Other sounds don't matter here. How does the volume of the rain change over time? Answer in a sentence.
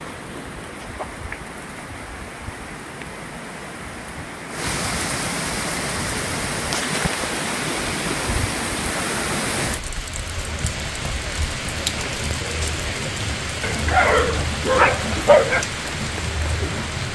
The volume of the rain goes up.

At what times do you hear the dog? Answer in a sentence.
You can hear the dog from 13.6 to 15.7 s.